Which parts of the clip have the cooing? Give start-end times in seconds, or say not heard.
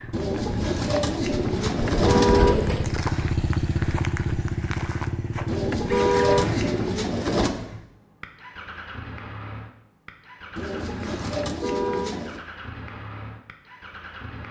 0.1-3.0, 5.5-7.5, 10.6-12.4.